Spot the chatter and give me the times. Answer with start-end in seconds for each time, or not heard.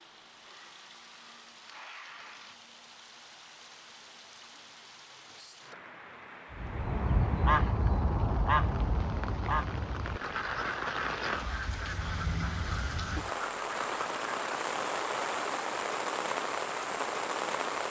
not heard.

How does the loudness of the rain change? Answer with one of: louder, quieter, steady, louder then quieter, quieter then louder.
louder.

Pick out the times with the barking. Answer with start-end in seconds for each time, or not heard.
not heard.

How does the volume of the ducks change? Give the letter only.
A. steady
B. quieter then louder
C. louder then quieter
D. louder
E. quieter
E.